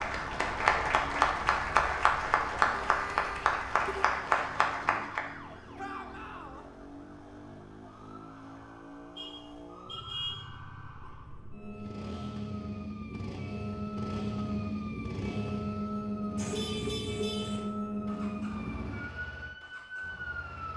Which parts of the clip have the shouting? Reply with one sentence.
You can hear the shouting from 5.8 to 6.7 s.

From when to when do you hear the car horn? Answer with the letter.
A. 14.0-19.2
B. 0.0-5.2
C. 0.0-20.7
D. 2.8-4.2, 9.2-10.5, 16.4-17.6
D.